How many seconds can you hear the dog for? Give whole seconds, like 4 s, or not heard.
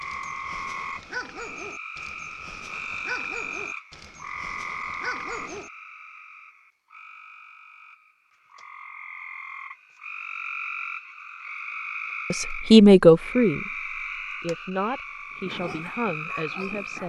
7 s.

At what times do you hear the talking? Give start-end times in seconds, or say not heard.
12.3-17.0.